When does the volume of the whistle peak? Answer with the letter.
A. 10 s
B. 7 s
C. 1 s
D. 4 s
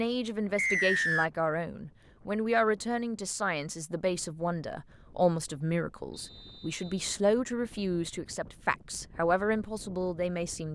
C.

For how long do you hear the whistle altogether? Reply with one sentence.
You can hear the whistle for 2 seconds altogether.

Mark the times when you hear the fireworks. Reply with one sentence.
You can't hear the fireworks here.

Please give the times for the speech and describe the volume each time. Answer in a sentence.
You can hear the speech from 0.0 to 10.7 s, at a steady volume.